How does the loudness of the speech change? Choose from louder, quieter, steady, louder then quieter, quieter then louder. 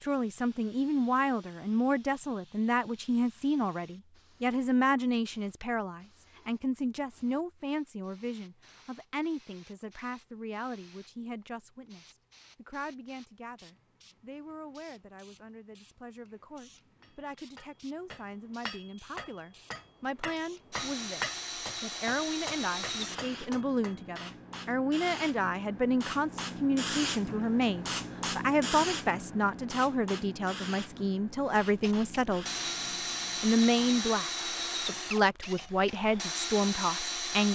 quieter then louder.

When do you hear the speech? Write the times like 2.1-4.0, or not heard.
0.0-32.5, 33.4-37.4.